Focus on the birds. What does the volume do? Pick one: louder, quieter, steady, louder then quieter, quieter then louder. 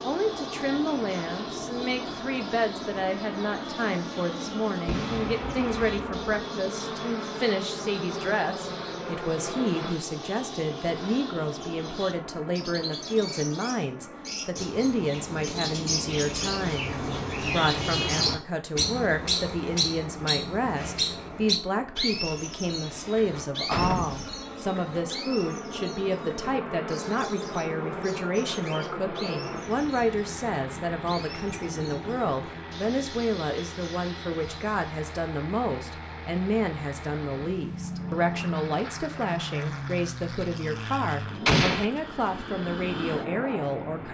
louder then quieter.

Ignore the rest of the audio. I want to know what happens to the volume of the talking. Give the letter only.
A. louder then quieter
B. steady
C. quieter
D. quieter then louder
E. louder
B.